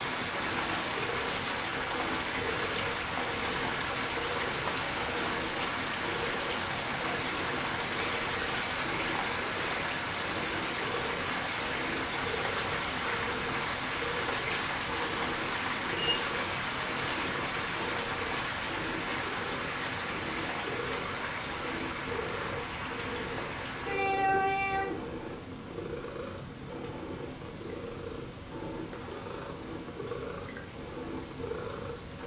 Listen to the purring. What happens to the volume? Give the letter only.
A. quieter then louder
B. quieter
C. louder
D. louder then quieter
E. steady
E.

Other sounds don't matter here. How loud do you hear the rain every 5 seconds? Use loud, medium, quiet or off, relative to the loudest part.
loud, loud, loud, loud, loud, quiet, quiet.